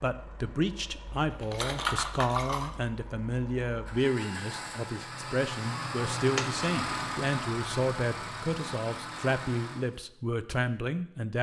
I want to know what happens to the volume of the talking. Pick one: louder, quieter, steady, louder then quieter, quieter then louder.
steady.